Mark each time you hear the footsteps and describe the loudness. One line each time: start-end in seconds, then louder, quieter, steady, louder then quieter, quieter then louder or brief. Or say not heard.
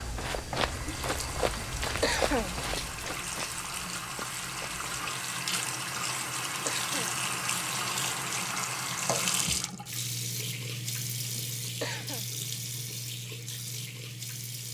0.0-4.8 quieter.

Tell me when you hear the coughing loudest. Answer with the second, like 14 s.
2 s.